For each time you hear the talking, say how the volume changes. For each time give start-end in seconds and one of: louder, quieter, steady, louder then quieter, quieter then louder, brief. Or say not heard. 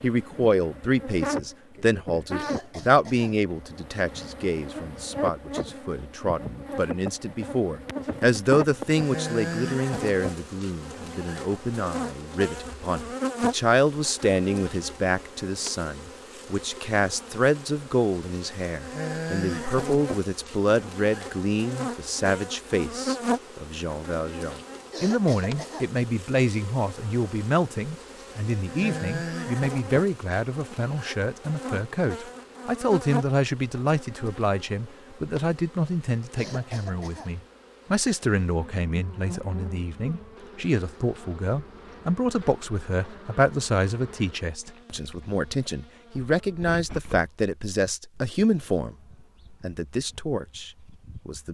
0.0-51.5 steady.